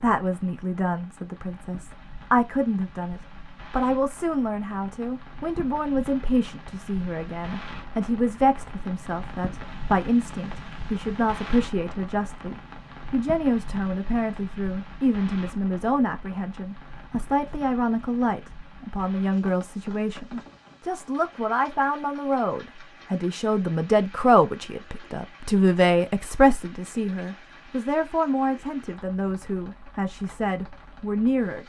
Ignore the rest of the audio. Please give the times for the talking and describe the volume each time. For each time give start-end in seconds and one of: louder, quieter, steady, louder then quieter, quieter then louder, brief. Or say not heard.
0.0-31.6 steady.